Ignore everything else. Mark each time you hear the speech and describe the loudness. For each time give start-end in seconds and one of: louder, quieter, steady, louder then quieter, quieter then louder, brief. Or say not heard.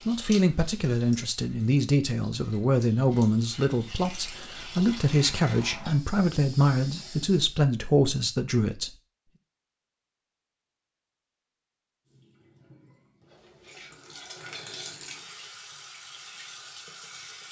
0.1-8.9 steady.